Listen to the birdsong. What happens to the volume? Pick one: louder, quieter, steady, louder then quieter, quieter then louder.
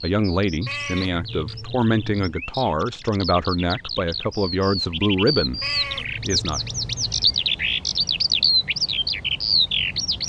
louder.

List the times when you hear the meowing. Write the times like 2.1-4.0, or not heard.
0.7-2.2, 5.6-7.4.